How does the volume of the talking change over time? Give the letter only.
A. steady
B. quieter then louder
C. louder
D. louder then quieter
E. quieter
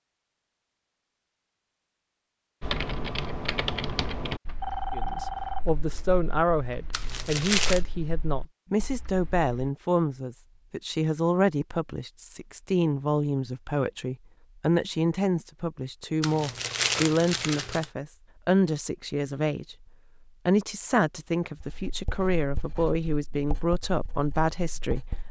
A.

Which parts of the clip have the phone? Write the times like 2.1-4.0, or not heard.
4.5-6.1.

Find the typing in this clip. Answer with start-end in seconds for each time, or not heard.
2.6-9.7.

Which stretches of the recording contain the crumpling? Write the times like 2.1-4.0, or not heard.
6.9-7.8, 16.2-17.9.